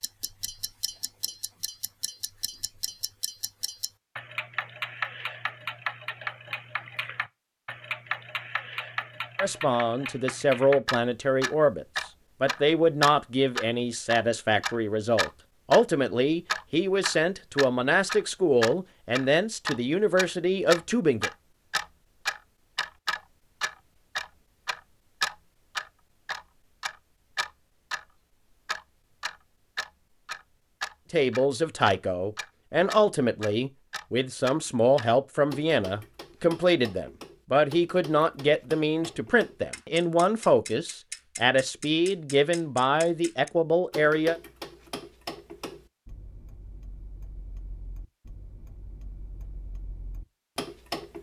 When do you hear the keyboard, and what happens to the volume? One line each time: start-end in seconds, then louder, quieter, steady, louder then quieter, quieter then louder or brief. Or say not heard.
not heard.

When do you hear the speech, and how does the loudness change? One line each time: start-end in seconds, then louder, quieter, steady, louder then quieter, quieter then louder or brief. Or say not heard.
9.3-21.3 steady
31.1-44.4 steady.